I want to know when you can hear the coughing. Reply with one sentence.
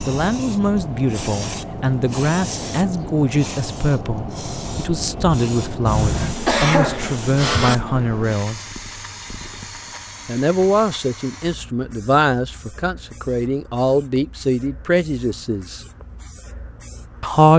The coughing can be heard from 5.8 to 7.8 s.